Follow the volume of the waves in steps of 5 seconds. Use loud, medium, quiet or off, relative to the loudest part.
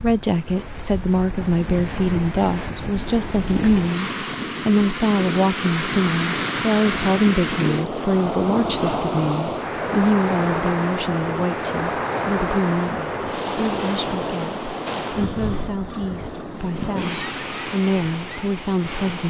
medium, loud, loud, medium.